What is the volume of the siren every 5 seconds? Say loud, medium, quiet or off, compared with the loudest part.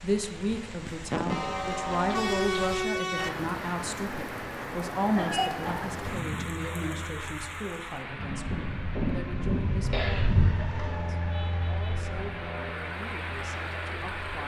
off, loud, loud.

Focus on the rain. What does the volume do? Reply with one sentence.
The volume of the rain goes down, then up.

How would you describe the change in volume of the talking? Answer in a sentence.
The loudness of the talking goes down.